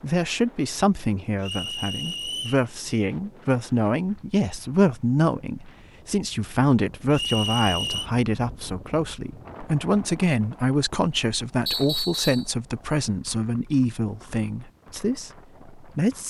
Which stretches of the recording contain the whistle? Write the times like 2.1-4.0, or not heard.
1.4-2.6, 7.1-8.1, 11.7-12.5.